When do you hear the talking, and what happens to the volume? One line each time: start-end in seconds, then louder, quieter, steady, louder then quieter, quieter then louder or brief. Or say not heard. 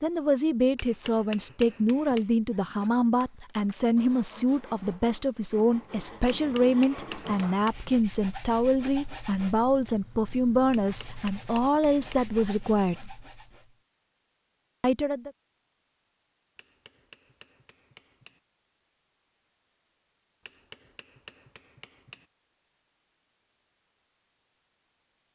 0.0-13.1 steady
14.8-15.3 brief.